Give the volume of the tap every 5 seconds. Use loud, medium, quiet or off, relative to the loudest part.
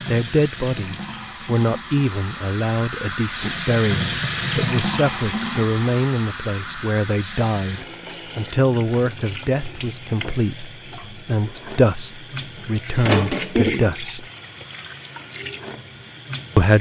loud, medium, loud, medium.